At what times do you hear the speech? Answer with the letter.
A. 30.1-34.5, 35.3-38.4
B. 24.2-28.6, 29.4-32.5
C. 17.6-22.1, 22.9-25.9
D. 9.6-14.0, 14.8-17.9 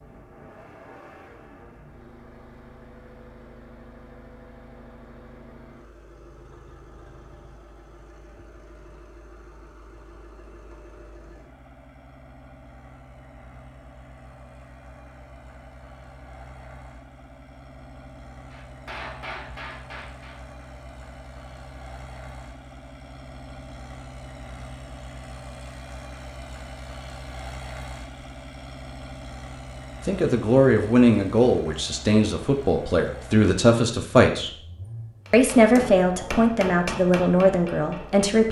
A.